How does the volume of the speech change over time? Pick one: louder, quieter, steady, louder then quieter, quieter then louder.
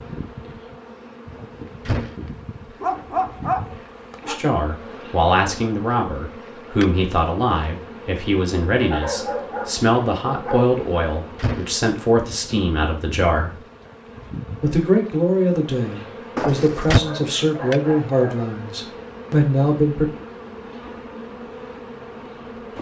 steady.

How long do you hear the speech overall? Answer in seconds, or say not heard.
15 s.